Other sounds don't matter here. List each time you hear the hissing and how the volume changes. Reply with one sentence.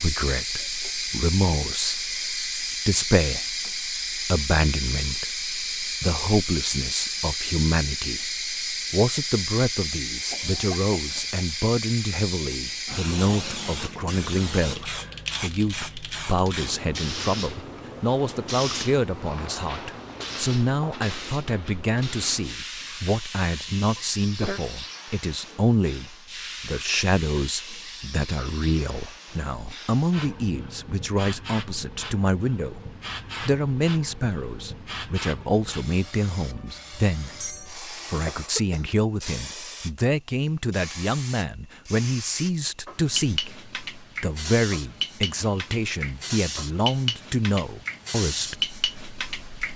You can hear the hissing from 0.0 to 49.7 s, getting quieter then louder.